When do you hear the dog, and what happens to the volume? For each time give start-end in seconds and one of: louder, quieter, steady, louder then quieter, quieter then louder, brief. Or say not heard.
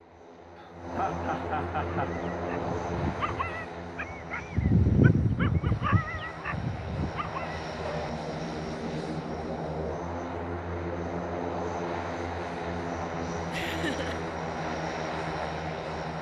1.8-8.2 louder then quieter.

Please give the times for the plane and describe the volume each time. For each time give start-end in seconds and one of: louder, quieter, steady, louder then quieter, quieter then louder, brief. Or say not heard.
0.0-16.1 quieter then louder.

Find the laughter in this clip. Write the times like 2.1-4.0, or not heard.
0.6-2.1, 13.5-14.2.